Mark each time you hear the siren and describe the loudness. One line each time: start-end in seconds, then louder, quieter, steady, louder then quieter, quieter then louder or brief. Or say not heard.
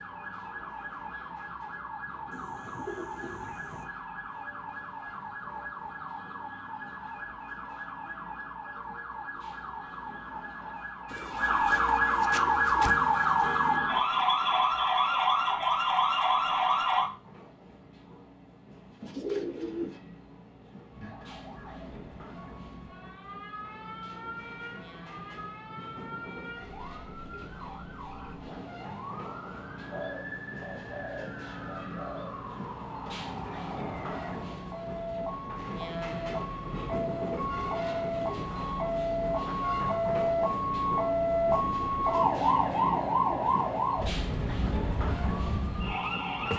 0.0-17.1 louder
20.9-46.5 louder.